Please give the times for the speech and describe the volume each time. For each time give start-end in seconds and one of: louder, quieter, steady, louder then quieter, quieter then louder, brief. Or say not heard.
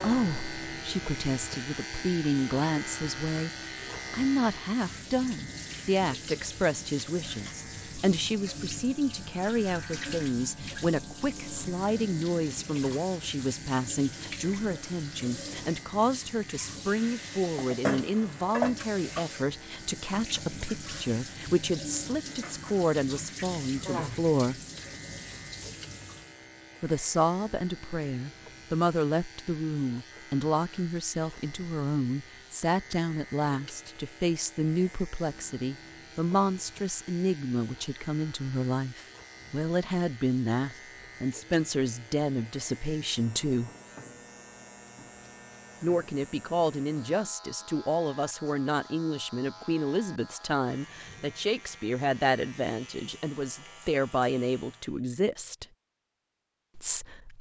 0.0-24.6 steady
26.8-43.7 steady
45.8-55.6 steady
56.8-57.3 brief.